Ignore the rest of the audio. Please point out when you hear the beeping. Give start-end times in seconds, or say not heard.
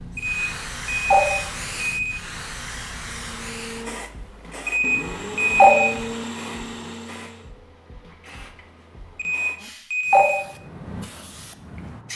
0.1-2.1, 4.7-5.9, 9.2-10.4.